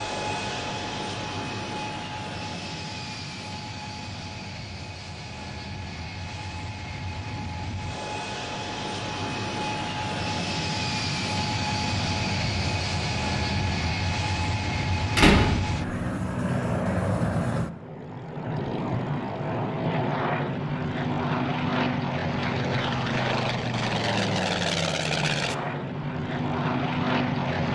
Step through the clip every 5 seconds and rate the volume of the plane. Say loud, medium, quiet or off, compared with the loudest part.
medium, medium, loud, loud, loud, loud.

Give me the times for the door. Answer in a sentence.
You can hear the door from 14.7 to 15.5 s.